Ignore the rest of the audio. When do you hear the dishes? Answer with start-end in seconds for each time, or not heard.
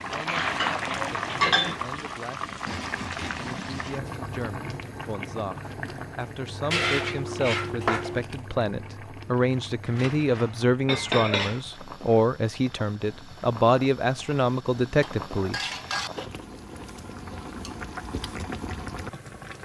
0.2-1.8, 6.7-8.2, 9.8-11.6, 15.0-17.8.